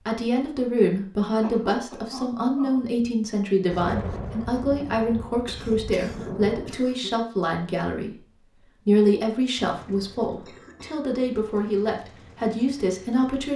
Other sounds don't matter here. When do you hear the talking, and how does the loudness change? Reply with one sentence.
The talking can be heard from 0.0 to 13.5 s, at a steady volume.